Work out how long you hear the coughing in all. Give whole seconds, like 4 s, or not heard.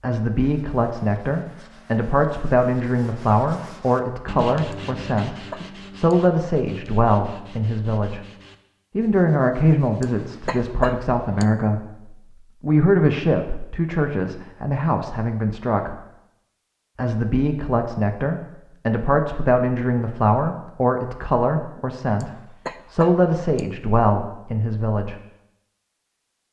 4 s.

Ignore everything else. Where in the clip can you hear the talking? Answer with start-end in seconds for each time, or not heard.
0.0-8.2, 8.9-16.0, 16.9-25.1.